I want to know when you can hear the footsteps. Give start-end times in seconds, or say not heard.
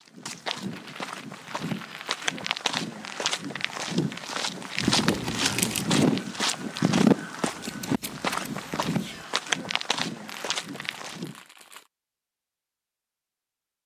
0.1-11.4.